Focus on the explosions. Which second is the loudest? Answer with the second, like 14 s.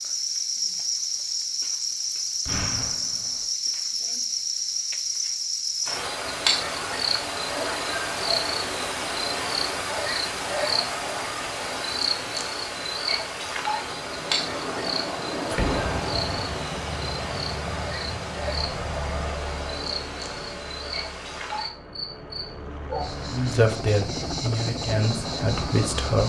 16 s.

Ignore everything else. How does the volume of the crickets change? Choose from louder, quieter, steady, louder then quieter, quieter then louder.
quieter.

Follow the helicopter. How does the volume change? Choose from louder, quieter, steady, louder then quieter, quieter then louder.
quieter then louder.